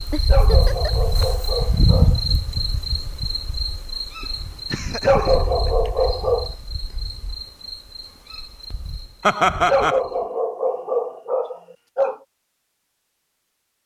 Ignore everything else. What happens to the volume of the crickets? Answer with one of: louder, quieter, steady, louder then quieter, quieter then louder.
quieter.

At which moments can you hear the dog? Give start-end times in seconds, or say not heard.
0.2-2.4, 5.0-6.5, 9.7-12.2.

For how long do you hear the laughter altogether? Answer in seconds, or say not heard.
3 s.